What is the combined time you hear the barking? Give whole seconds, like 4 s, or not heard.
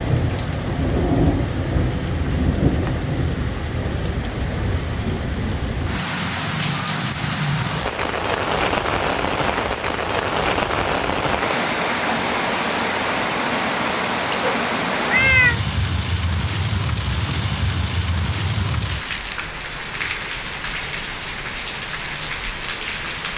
not heard.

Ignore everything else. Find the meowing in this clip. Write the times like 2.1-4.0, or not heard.
14.4-15.6.